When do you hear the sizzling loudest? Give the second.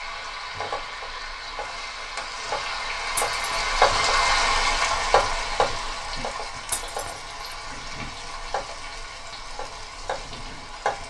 4 s.